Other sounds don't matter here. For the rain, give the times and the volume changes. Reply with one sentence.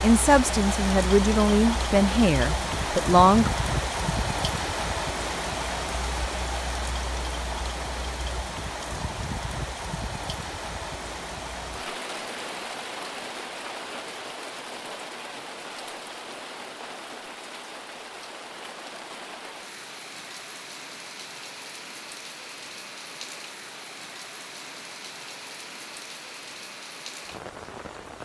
You can hear the rain from 0.0 to 28.2 s, getting quieter.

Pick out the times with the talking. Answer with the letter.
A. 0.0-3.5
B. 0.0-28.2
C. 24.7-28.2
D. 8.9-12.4
A.